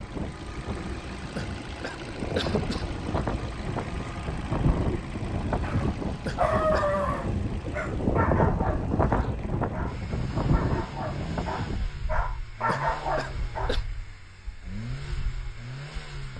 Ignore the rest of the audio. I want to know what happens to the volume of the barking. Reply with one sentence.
The loudness of the barking goes down, then up.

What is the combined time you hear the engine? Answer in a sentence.
The engine can be heard for 16 seconds in total.